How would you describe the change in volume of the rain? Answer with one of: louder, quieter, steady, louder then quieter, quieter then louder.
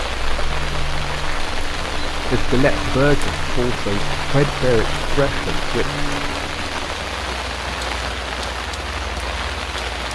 steady.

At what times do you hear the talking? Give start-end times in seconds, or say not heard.
2.3-6.0.